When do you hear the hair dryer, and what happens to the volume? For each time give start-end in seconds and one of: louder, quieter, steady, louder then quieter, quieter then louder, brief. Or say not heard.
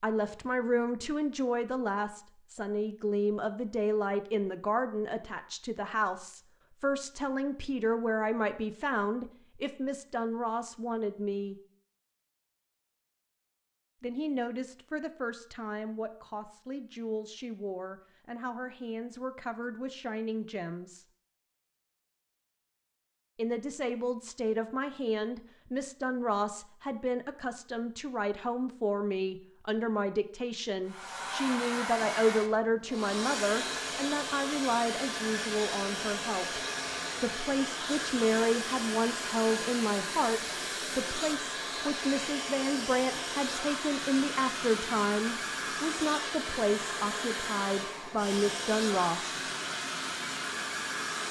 30.9-51.2 steady.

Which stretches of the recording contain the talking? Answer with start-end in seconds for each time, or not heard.
0.0-11.6, 14.0-21.1, 23.4-36.6, 37.2-49.4.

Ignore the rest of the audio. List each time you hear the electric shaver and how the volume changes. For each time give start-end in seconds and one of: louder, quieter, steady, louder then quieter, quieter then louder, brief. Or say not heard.
not heard.